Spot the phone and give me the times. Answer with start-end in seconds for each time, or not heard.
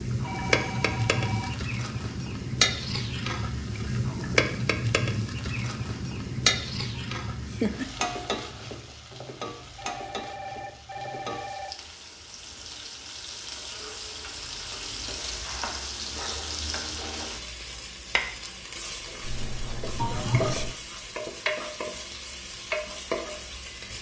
0.2-1.6, 9.8-11.7, 19.2-20.8.